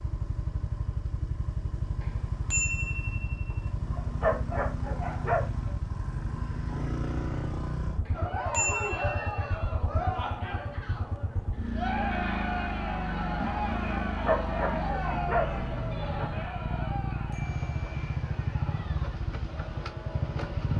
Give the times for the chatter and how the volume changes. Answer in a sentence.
The chatter can be heard from 8.1 to 20.7 s, getting quieter.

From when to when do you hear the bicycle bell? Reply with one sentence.
The bicycle bell can be heard from 2.0 to 3.6 s, from 8.1 to 9.6 s and from 17.3 to 18.0 s.